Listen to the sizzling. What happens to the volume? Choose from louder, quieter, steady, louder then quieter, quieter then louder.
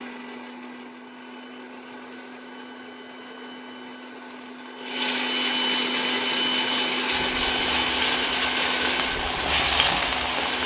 louder.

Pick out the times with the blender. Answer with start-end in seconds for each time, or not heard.
0.0-10.6.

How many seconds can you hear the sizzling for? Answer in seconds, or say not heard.
5 s.